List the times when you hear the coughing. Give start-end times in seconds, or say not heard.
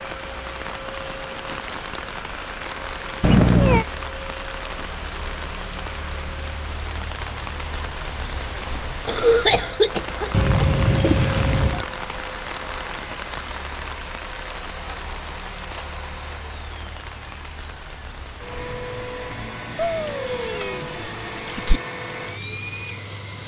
9.1-10.7.